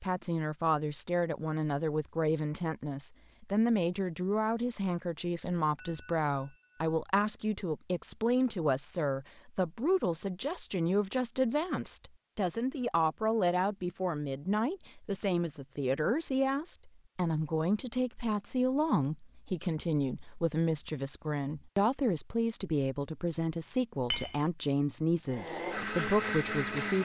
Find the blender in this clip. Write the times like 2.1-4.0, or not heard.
25.2-27.0.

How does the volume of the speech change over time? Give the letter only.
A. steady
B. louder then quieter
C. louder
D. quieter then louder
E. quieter
A.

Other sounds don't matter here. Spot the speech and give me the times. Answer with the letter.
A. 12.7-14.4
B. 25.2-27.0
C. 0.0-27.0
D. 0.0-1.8
C.